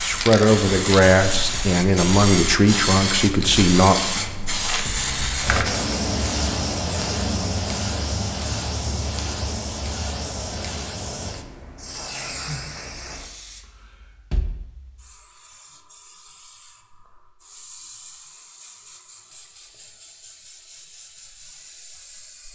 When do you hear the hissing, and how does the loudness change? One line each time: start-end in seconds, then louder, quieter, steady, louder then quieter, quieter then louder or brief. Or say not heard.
0.0-22.5 quieter.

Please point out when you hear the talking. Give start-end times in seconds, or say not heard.
0.0-4.1.